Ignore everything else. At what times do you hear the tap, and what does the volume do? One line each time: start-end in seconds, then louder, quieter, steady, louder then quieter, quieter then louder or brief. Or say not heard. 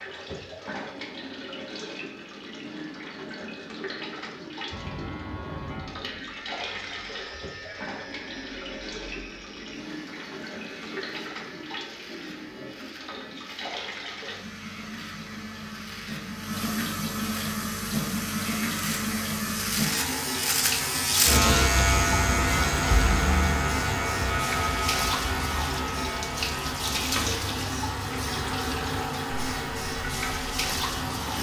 0.0-31.3 louder.